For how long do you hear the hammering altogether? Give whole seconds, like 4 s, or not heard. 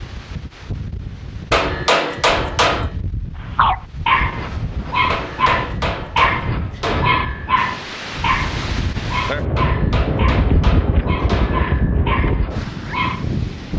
6 s.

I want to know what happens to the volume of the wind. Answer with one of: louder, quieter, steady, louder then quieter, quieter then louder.
louder.